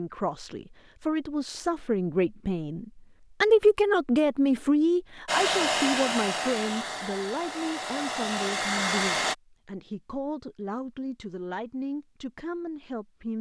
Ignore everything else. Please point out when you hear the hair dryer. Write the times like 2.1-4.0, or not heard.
5.2-9.3.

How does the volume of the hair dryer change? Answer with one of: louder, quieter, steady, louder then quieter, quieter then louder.
quieter then louder.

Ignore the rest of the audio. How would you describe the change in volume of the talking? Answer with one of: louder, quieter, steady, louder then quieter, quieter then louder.
louder then quieter.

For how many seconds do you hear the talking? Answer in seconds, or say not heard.
13 s.